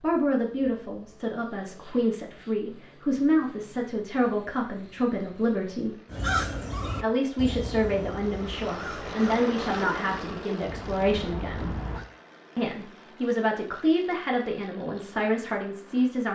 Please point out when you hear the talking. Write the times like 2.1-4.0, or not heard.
0.0-6.0, 7.0-11.8, 12.6-16.3.